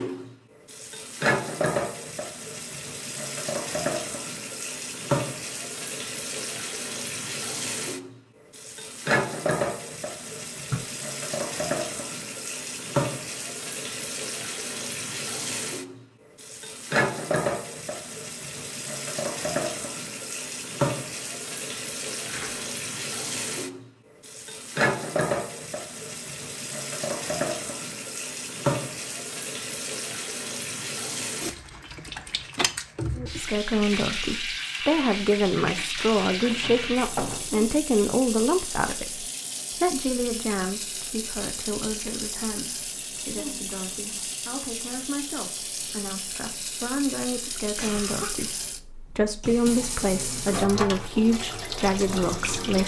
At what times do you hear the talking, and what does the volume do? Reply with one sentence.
You can hear the talking from 33.1 to 52.8 s, getting quieter then louder.